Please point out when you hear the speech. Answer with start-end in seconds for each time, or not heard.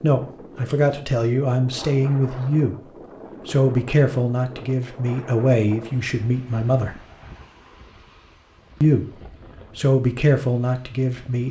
0.0-7.0, 8.8-11.4.